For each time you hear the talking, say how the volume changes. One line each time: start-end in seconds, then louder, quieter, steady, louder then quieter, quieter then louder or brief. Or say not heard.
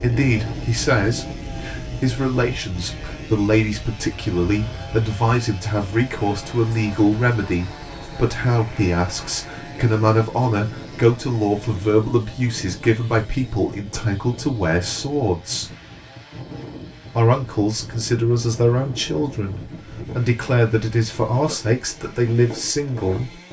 0.0-15.7 steady
17.1-23.3 steady.